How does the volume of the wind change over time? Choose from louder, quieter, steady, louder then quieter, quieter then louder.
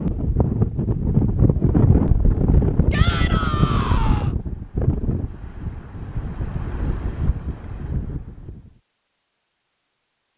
quieter.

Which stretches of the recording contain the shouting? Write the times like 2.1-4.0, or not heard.
2.9-4.3.